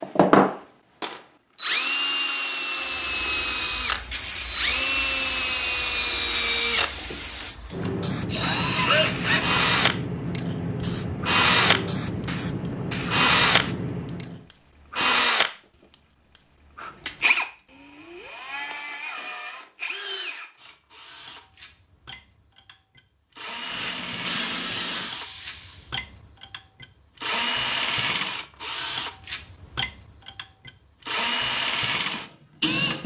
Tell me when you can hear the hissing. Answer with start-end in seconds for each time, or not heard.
2.8-14.5, 23.6-25.9.